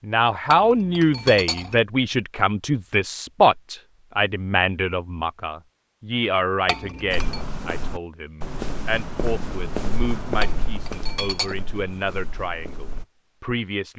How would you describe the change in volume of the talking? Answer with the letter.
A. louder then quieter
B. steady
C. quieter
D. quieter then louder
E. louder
C.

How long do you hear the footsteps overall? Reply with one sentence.
The footsteps can be heard for 6 seconds in total.